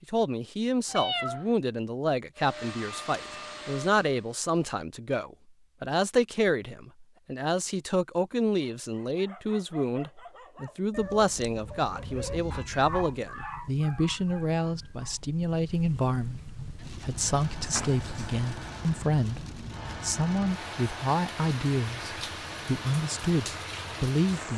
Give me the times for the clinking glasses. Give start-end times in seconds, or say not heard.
not heard.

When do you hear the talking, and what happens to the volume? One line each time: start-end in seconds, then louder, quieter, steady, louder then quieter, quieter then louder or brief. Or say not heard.
0.0-24.5 steady.